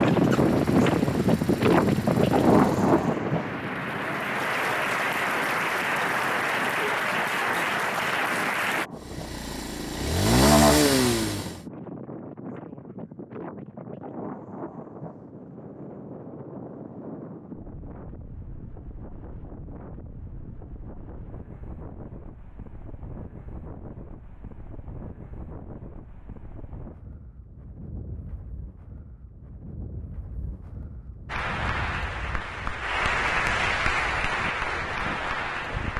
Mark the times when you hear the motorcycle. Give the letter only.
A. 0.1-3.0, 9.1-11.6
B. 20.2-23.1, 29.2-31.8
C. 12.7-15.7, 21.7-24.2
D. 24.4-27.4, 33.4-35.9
A.